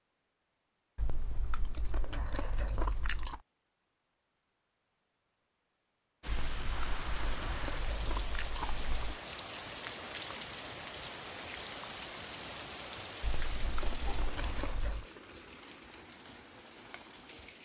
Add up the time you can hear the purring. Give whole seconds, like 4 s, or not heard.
not heard.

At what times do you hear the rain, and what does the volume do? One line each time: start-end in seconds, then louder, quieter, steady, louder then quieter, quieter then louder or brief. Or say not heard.
6.2-17.6 quieter.